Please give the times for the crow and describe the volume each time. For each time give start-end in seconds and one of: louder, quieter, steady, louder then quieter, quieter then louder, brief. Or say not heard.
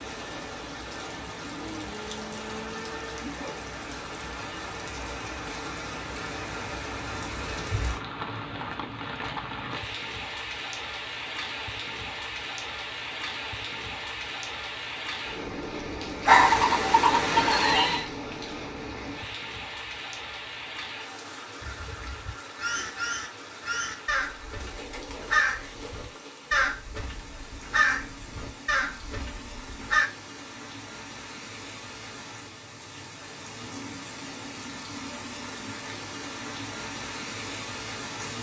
21.6-30.1 louder then quieter.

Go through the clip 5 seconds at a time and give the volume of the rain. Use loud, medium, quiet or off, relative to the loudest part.
loud, loud, loud, loud, medium, medium, medium, loud.